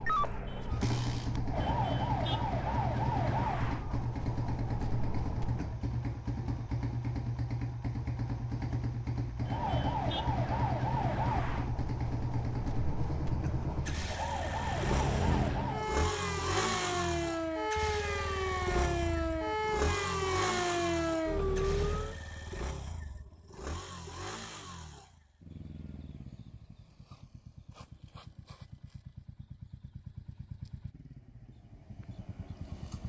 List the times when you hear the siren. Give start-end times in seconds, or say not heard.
0.0-5.8, 9.4-22.1.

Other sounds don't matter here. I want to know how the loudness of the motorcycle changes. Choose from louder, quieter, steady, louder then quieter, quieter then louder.
quieter.